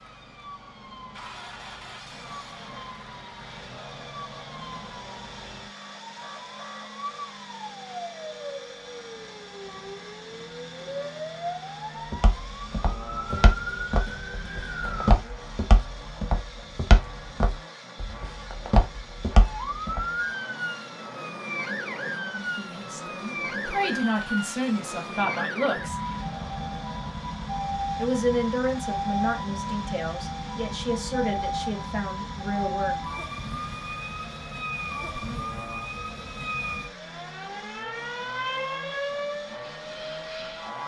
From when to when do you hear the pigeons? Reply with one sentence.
You can't hear the pigeons here.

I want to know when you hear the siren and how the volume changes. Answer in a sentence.
You can hear the siren from 0.0 to 15.2 s, getting louder; and from 19.4 to 40.8 s, at a steady volume.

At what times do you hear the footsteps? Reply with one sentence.
You can hear the footsteps from 12.1 to 20.1 s.